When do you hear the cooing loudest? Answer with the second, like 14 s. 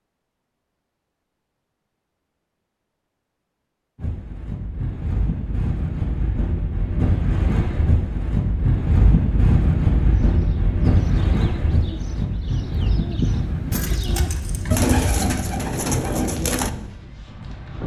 15 s.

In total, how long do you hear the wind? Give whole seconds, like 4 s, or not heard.
14 s.